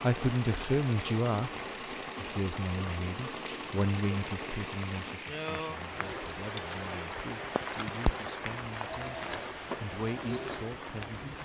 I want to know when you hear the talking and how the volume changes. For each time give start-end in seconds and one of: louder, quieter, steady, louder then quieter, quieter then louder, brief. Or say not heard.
0.0-1.5 brief
2.1-11.4 quieter then louder.